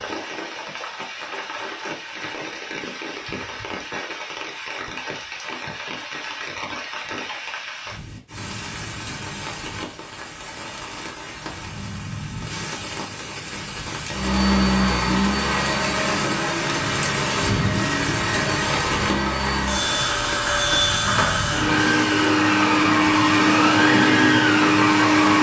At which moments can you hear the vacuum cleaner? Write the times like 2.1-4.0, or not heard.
14.1-25.3.